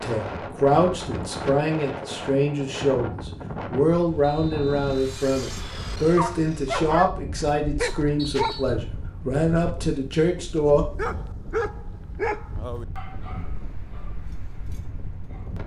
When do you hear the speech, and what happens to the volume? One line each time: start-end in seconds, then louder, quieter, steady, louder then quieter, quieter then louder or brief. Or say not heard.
0.0-10.8 steady.